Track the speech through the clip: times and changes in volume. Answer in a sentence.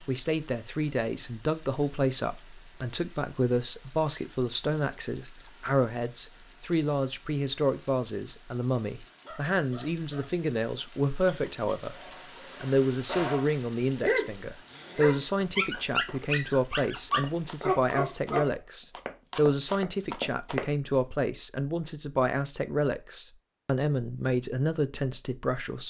The speech can be heard from 0.0 to 11.9 s, at a steady volume; and from 12.6 to 25.8 s, at a steady volume.